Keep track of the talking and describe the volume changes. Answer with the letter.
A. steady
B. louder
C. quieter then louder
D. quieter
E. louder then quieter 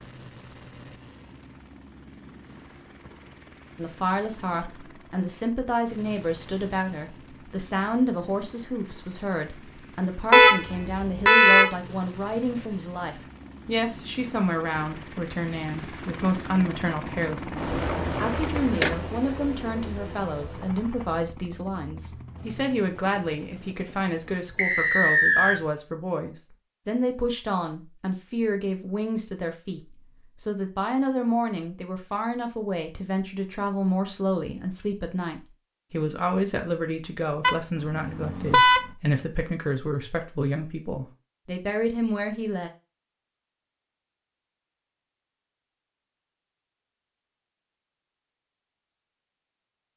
A.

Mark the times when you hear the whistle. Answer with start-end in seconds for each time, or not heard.
24.6-25.6.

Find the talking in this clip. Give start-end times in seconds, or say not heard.
3.8-42.7.